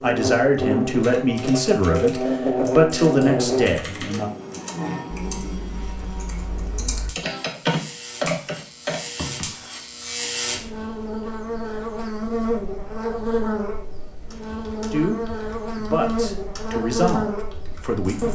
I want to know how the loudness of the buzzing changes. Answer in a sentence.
The loudness of the buzzing goes down, then up.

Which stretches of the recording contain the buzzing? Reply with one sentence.
The buzzing can be heard from 0.0 to 18.2 s.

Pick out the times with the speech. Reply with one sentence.
You can hear the speech from 0.0 to 4.3 s and from 14.9 to 18.2 s.